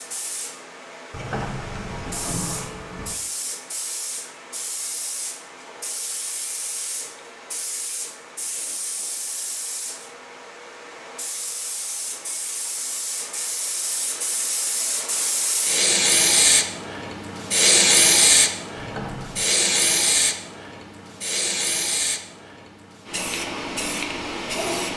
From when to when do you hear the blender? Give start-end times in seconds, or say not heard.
not heard.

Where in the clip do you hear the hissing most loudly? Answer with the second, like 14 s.
18 s.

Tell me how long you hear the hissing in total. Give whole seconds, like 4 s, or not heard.
25 s.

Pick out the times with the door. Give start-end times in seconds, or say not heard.
1.1-3.1, 18.8-19.5.